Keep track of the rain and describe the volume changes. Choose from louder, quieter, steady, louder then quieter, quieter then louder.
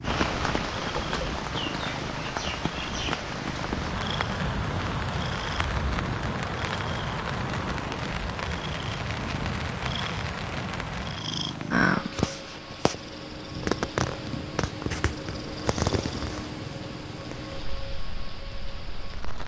quieter.